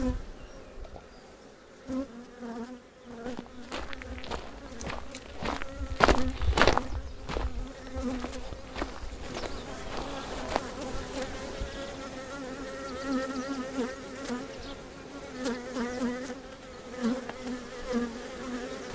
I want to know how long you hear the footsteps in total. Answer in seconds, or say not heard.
7 s.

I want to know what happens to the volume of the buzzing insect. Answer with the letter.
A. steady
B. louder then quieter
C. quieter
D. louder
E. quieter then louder
D.